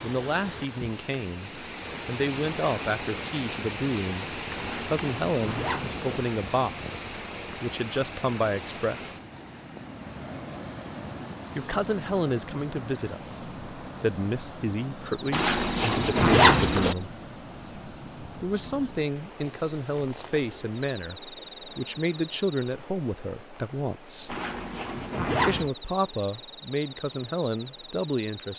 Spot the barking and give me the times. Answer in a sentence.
The barking can't be heard in this clip.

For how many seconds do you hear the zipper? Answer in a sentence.
You can hear the zipper for 5 seconds altogether.